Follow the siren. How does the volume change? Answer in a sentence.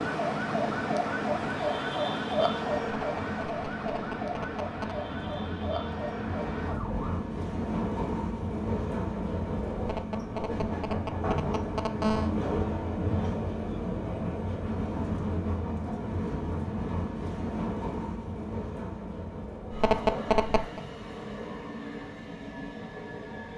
The volume of the siren goes down.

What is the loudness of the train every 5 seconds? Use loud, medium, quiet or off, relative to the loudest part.
medium, loud, loud, loud, medium.